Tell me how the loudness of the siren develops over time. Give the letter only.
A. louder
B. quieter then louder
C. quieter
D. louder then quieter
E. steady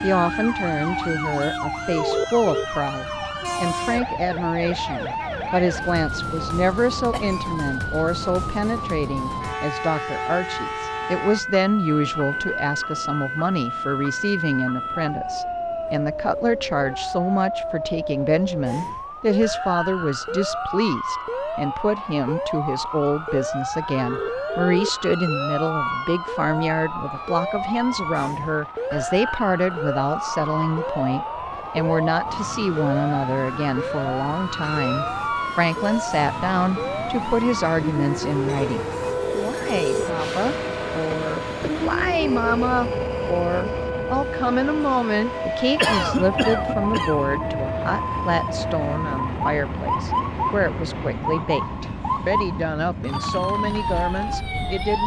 E.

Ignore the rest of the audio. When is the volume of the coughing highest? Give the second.
46 s.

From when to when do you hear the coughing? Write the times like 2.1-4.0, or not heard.
7.1-7.5, 45.8-47.3.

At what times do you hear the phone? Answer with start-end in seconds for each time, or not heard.
1.9-2.6, 23.9-24.9, 39.1-40.0.